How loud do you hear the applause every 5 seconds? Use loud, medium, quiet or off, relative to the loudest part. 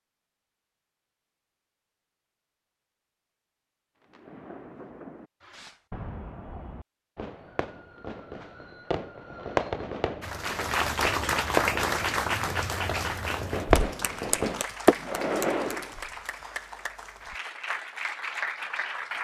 off, off, loud, medium.